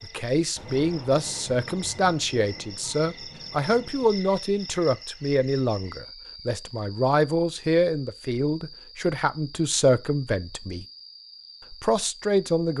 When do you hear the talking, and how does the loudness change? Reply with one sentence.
The talking can be heard from 0.0 to 10.8 s, at a steady volume; and briefly from 11.7 to 12.7 s.